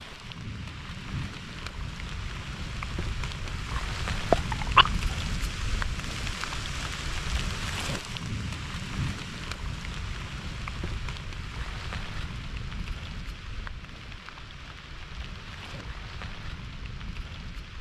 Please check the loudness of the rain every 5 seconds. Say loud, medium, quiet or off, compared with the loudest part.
loud, loud, medium, medium.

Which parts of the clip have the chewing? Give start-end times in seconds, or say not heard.
3.8-4.9.